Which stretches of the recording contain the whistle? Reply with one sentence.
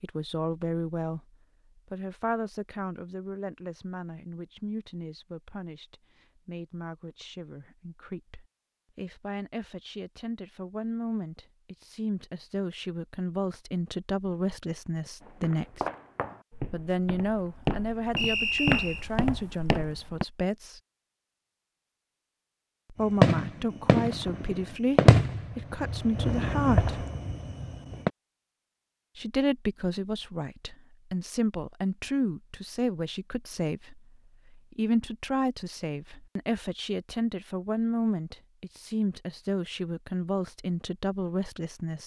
You can hear the whistle from 18.1 to 19.1 s.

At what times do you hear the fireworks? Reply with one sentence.
The fireworks can be heard from 23.0 to 28.1 s.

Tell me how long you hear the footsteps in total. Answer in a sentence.
The footsteps can be heard for 5 seconds in total.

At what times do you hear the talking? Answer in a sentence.
The talking can be heard from 0.0 to 1.2 s, from 1.9 to 15.8 s, from 16.7 to 20.8 s, from 22.9 to 27.1 s and from 29.1 to 42.0 s.